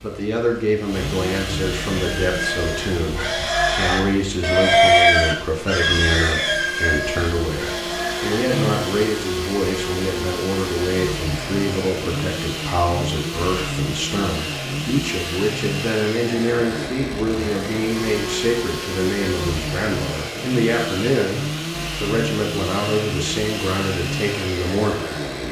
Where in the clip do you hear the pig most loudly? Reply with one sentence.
The loudest moment of the pig is at 5 seconds.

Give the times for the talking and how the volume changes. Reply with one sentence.
You can hear the talking from 0.0 to 25.0 s, at a steady volume.